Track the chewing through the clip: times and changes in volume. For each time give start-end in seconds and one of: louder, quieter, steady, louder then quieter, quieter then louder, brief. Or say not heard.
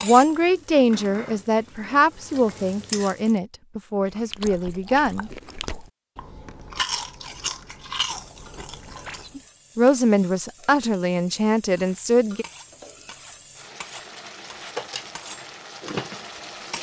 4.0-9.3 louder then quieter.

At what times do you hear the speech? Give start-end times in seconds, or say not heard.
0.0-5.8, 9.3-12.4.